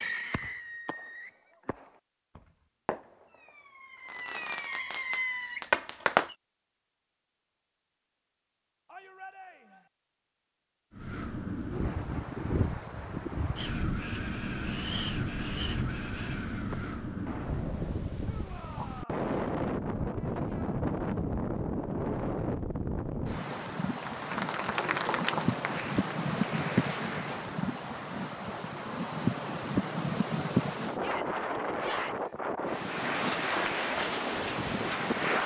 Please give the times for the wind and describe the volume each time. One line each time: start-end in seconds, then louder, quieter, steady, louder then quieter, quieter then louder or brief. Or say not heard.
10.9-35.4 steady.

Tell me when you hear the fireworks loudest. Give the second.
6 s.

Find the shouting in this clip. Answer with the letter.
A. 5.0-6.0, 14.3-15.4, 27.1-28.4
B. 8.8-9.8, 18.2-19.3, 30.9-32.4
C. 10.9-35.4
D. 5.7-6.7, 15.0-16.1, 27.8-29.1
B.